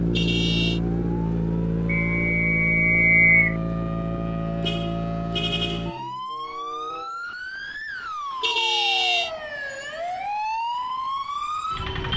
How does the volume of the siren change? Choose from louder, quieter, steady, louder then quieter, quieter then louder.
louder.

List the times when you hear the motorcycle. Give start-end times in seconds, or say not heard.
0.0-6.0.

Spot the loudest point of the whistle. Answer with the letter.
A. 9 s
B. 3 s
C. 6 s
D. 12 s
B.